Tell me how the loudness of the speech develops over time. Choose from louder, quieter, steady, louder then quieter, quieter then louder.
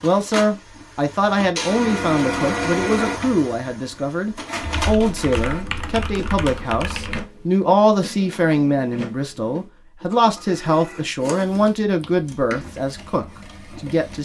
steady.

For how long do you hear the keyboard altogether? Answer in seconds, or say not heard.
3 s.